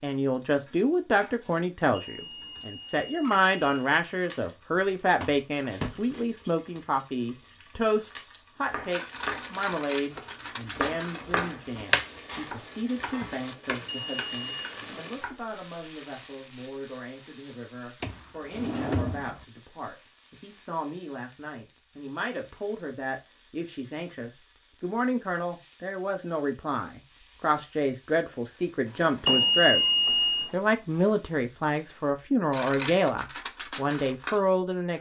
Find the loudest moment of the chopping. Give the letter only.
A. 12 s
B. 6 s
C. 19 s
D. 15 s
A.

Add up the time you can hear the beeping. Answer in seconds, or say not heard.
4 s.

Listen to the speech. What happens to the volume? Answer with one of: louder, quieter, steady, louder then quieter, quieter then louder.
quieter then louder.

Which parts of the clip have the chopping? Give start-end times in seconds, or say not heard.
8.7-15.4.